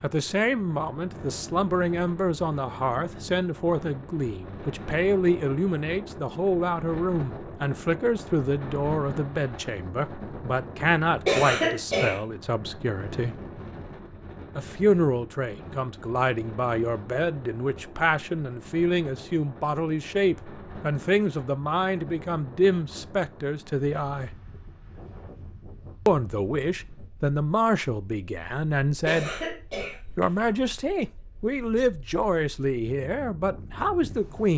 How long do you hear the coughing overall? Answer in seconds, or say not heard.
2 s.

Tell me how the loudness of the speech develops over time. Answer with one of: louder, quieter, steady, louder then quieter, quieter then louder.
steady.